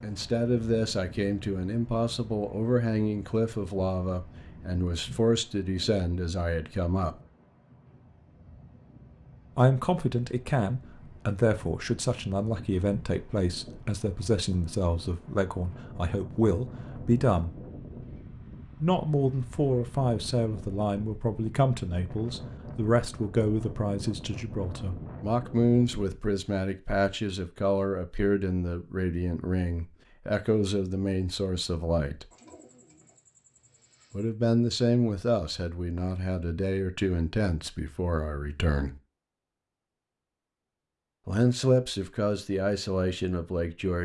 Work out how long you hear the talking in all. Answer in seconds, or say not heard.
36 s.